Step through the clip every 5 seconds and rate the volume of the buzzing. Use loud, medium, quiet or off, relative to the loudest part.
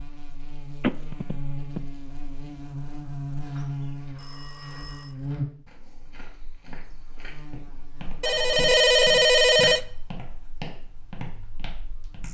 loud, loud, quiet.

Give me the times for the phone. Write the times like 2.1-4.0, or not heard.
0.8-1.8, 4.2-5.2, 8.2-9.8.